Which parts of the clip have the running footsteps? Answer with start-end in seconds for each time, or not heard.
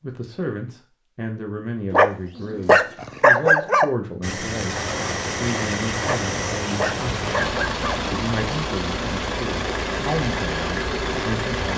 not heard.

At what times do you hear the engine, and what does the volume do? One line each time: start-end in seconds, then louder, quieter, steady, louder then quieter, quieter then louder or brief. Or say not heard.
4.2-11.7 steady.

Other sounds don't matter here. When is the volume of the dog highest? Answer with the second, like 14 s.
3 s.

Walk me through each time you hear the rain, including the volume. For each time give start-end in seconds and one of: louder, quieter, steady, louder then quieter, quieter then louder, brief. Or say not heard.
4.7-11.7 steady.